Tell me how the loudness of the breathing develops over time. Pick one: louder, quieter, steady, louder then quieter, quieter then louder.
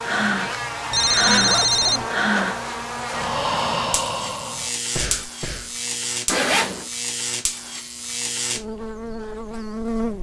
quieter.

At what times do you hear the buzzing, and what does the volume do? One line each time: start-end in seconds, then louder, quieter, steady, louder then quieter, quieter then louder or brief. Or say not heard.
0.0-10.1 steady.